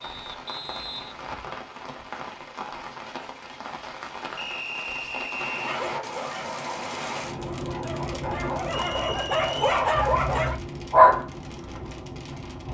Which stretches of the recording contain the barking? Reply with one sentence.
The barking can be heard from 5.7 to 11.2 s.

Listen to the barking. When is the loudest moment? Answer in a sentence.
The volume of the barking peaks at 11 seconds.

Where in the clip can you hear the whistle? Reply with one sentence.
You can hear the whistle from 0.0 to 1.2 s, from 4.3 to 5.8 s and from 8.8 to 9.7 s.